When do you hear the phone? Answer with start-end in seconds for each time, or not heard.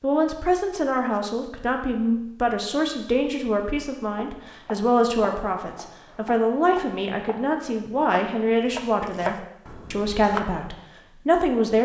not heard.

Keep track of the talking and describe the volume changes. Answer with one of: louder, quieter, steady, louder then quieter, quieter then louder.
steady.